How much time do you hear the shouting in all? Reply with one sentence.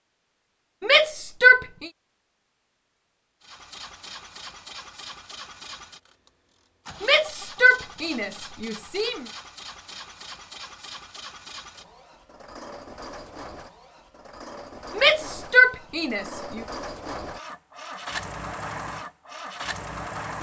You can hear the shouting for 5 seconds altogether.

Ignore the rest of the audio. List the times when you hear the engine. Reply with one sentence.
You can hear the engine from 3.4 to 20.3 s.